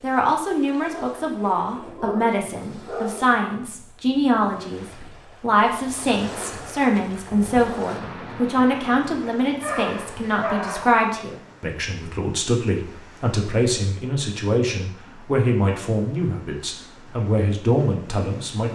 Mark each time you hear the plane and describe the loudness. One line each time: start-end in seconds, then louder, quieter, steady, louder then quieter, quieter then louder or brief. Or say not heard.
not heard.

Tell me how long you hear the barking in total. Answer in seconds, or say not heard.
4 s.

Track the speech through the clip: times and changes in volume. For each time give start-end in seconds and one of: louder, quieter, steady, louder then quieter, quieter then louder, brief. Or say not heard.
0.0-18.7 steady.